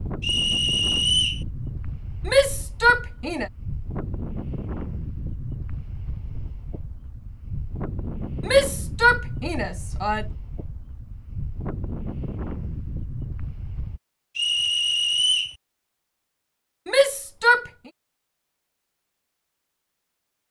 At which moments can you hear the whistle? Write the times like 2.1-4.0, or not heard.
0.2-1.4, 14.3-15.6.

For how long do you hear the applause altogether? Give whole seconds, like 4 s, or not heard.
not heard.